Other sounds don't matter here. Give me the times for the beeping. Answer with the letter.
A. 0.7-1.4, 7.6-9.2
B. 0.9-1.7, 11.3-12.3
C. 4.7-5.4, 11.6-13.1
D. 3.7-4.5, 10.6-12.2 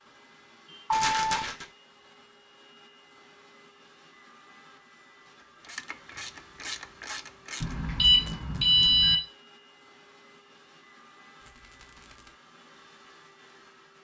A.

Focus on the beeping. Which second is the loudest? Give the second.
9 s.